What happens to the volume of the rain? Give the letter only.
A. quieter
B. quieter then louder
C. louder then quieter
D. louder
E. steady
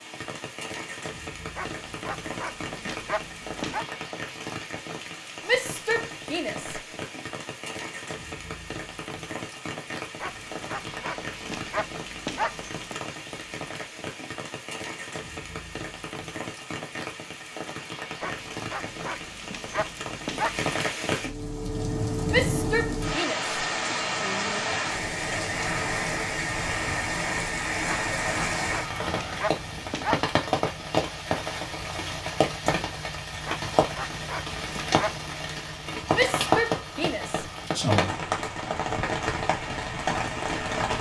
D.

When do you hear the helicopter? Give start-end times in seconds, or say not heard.
not heard.